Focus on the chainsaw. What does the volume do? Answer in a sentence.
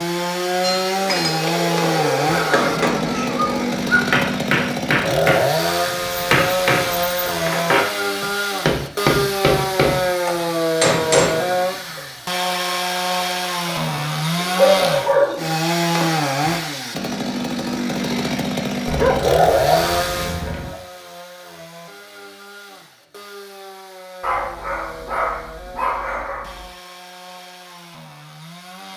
The volume of the chainsaw goes down.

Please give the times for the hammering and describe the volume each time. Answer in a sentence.
You can hear the hammering from 0.6 to 12.0 s, at a steady volume.